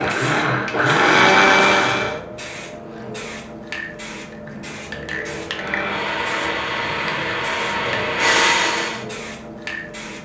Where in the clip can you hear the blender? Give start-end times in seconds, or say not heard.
0.0-2.2, 5.5-9.1.